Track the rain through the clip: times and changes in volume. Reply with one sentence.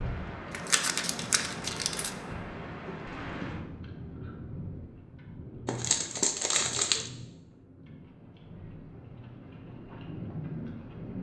You can hear the rain from 0.0 to 11.1 s, getting quieter then louder.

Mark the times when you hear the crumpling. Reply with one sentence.
You can hear the crumpling from 0.5 to 2.1 s and from 5.7 to 7.1 s.